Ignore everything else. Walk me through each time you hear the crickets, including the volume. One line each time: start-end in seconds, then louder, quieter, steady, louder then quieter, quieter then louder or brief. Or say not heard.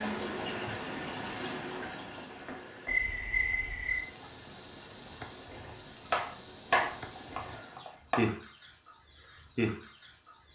2.9-10.4 steady.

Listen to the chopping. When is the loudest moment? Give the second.
7 s.